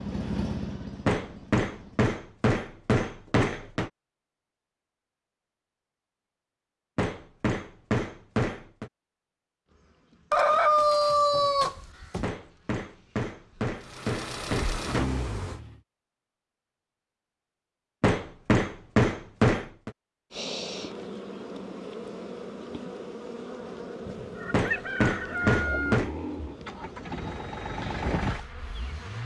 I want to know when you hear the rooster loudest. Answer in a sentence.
The loudest moment of the rooster is at 11 seconds.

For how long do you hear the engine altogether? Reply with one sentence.
The engine can be heard for 8 seconds in total.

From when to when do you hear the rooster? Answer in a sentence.
The rooster can be heard from 10.3 to 12.3 s and from 24.1 to 26.0 s.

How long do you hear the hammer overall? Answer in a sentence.
The hammer can be heard for 11 seconds in total.